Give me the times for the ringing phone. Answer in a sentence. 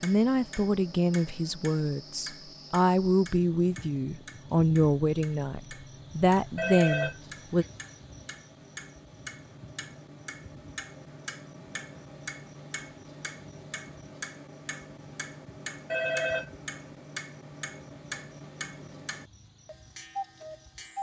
You can hear the ringing phone from 6.5 to 7.7 s and from 15.9 to 16.5 s.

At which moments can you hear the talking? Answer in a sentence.
The talking can be heard from 0.0 to 7.7 s.